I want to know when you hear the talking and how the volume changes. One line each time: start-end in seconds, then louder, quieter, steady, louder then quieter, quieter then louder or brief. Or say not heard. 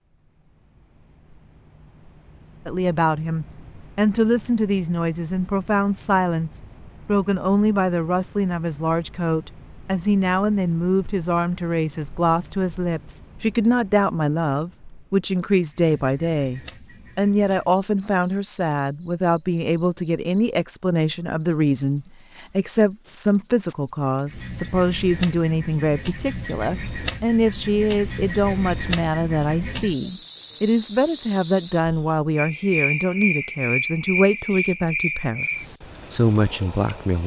2.6-37.2 steady.